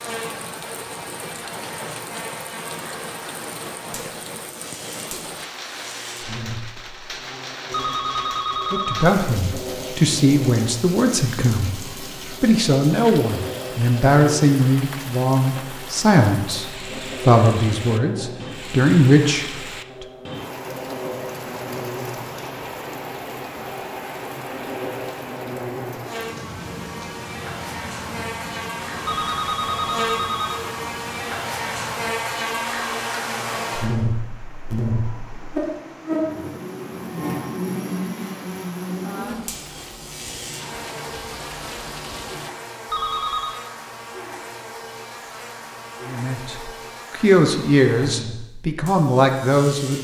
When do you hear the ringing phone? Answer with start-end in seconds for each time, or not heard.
7.7-9.2, 29.1-30.6, 42.9-43.6.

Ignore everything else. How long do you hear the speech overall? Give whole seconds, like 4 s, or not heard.
15 s.